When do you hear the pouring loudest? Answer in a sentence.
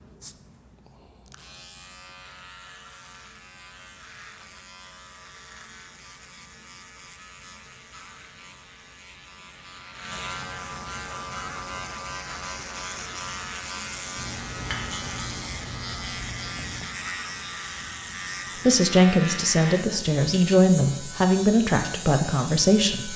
The volume of the pouring peaks at 15 seconds.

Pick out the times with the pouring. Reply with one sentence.
The pouring can be heard from 14.2 to 16.9 s.